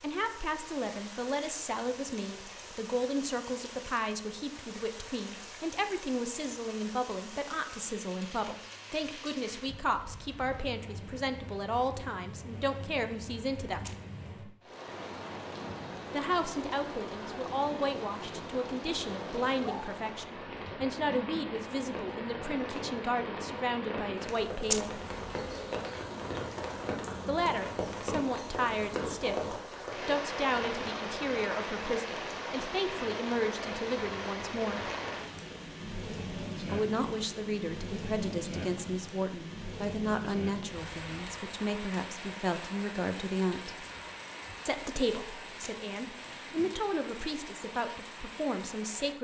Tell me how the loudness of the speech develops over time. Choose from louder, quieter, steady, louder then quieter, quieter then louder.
steady.